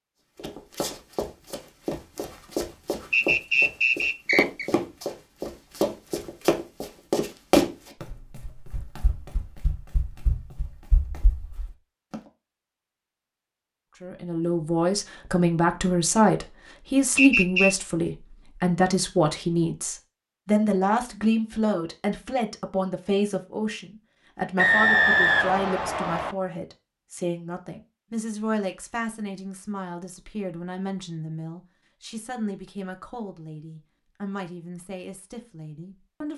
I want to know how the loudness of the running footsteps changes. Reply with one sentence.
The volume of the running footsteps goes up, then down.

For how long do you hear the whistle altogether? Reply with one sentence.
The whistle can be heard for 4 seconds in total.